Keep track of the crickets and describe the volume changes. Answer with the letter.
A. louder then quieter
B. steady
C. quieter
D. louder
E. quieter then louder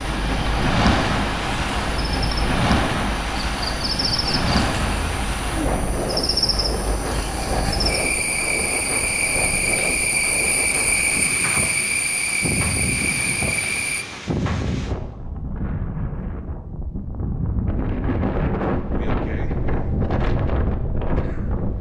D.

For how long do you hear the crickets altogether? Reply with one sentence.
You can hear the crickets for 14 seconds altogether.